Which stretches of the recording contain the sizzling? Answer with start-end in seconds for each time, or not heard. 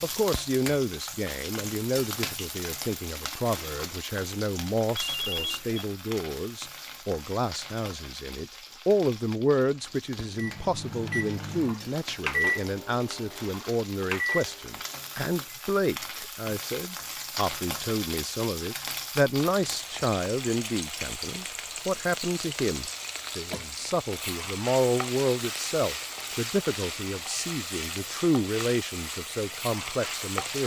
0.0-30.6.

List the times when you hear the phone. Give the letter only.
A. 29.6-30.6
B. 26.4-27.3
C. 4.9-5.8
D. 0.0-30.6
C.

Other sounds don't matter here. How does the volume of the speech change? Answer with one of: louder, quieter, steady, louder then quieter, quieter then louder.
steady.